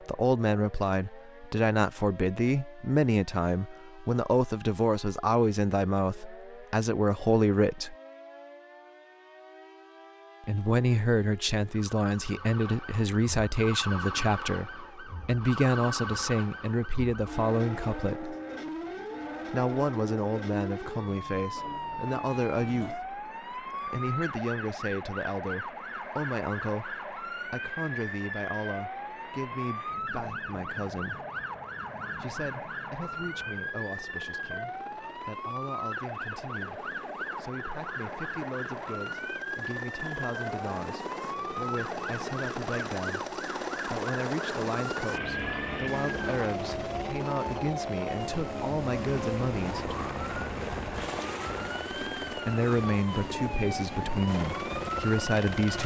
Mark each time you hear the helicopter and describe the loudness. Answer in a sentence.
The helicopter can be heard from 21.6 to 55.8 s, getting louder.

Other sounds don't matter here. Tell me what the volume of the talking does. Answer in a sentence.
The volume of the talking goes down, then up.